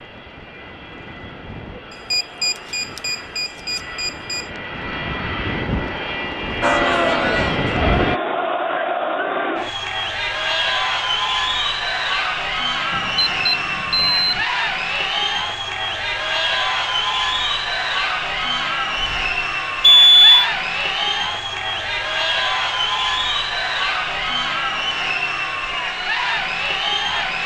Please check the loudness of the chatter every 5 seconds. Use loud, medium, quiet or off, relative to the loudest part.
off, loud, loud, loud, loud, loud.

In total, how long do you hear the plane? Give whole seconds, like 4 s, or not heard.
8 s.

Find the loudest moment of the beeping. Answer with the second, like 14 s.
20 s.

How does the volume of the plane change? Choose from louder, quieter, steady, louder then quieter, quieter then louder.
louder.